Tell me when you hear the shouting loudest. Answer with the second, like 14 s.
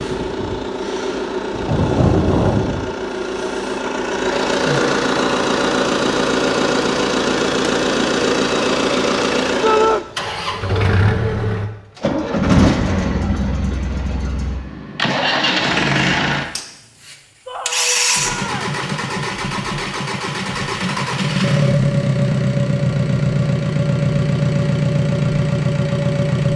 10 s.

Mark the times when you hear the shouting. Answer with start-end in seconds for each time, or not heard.
9.6-10.1, 17.4-18.8.